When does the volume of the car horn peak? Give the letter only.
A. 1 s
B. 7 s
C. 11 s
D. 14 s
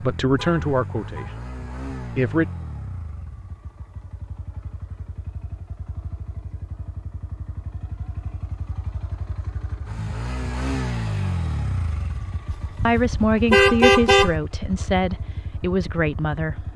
D.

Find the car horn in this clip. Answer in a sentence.
The car horn can be heard from 0.3 to 1.4 s and from 12.5 to 14.3 s.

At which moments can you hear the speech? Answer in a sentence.
You can hear the speech from 0.0 to 2.5 s and from 12.8 to 16.6 s.